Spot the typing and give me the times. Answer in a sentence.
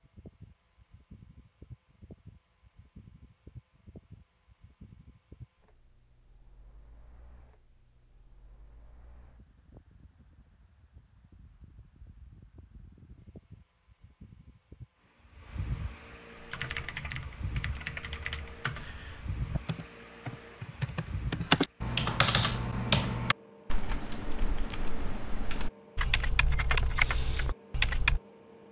You can hear the typing from 16.4 to 28.2 s.